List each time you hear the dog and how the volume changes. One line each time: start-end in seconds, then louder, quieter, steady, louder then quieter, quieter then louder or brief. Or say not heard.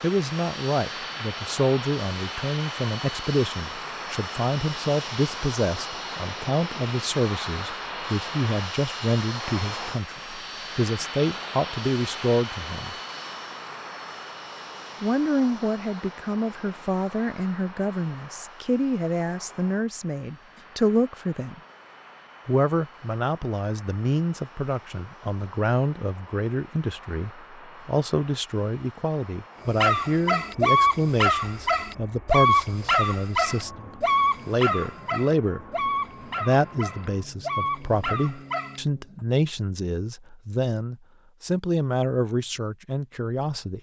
29.7-38.8 quieter.